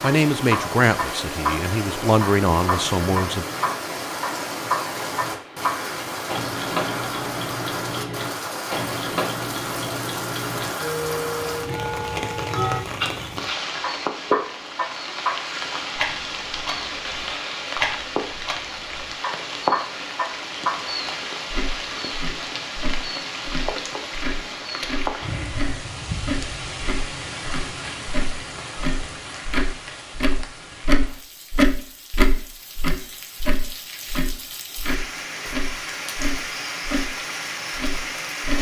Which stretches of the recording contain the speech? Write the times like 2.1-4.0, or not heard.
0.0-3.5.